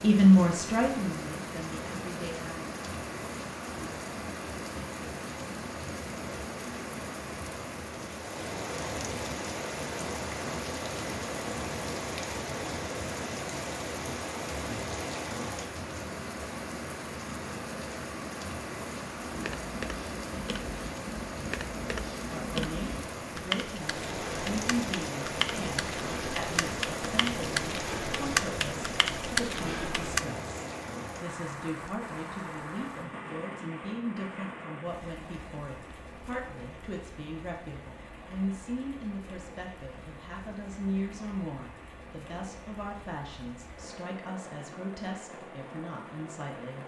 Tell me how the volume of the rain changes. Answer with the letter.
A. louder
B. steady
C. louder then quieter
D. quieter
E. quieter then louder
D.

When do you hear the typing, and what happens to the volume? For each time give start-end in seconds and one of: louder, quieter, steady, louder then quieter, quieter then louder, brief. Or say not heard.
19.2-30.2 louder.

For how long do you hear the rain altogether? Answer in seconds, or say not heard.
47 s.